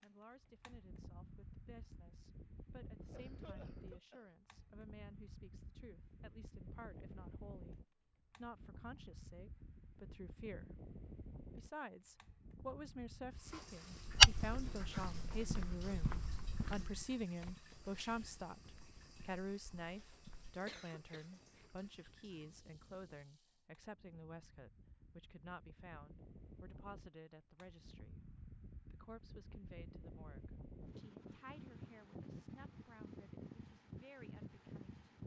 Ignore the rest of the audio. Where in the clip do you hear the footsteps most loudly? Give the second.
14 s.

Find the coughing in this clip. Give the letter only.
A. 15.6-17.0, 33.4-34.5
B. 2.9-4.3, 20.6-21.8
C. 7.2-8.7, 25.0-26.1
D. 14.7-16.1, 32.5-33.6
B.